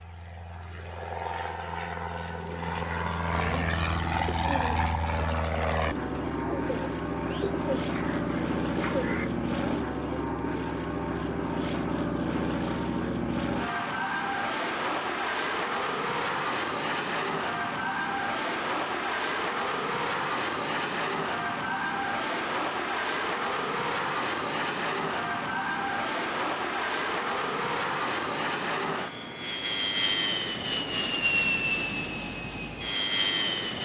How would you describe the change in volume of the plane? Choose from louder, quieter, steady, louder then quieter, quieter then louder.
steady.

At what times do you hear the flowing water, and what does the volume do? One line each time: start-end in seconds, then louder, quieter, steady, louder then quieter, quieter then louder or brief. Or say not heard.
not heard.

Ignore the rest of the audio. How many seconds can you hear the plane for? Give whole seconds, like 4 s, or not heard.
34 s.